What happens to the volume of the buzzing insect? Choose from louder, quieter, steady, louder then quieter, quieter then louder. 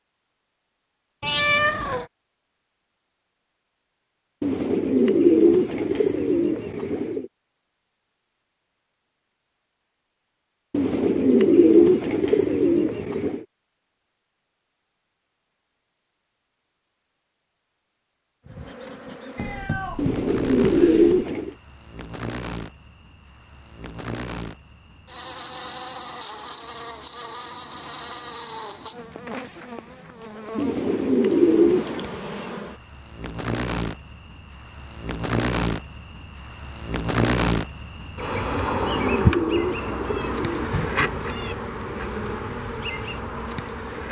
louder.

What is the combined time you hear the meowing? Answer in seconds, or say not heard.
4 s.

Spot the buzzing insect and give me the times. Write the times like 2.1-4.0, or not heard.
18.4-44.0.